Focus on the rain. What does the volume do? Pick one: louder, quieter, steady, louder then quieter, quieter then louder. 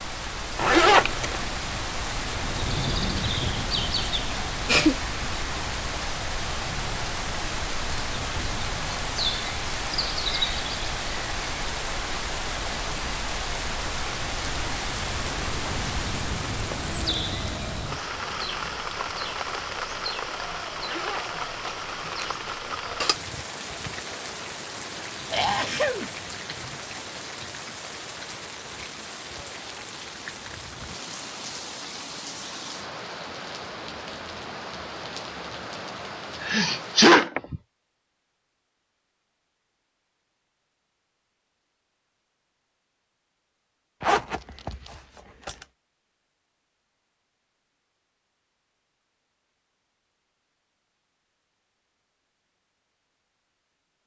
quieter.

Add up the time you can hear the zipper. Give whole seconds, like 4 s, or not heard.
4 s.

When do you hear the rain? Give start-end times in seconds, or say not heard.
0.0-37.2.